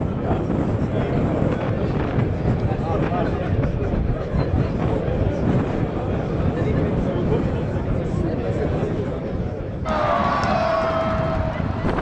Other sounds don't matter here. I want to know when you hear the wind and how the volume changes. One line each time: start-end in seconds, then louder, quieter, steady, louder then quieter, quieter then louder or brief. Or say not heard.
0.0-11.9 quieter.